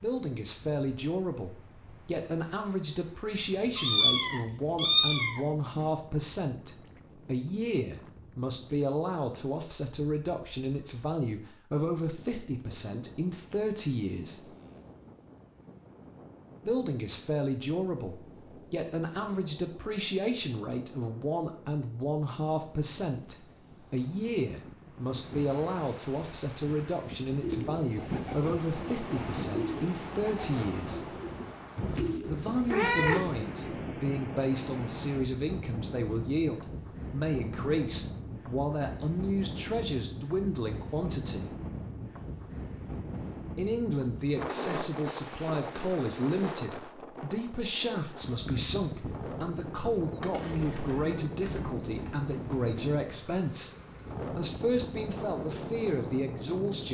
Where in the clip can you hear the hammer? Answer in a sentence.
You can't hear the hammer here.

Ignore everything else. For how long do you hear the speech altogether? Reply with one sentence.
The speech can be heard for 51 seconds in total.